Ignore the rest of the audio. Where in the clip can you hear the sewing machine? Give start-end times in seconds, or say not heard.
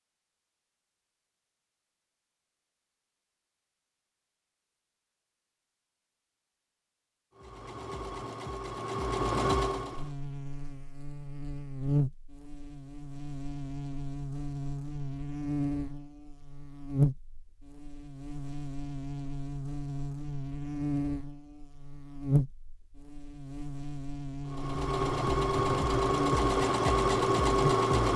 7.3-10.2, 24.4-28.1.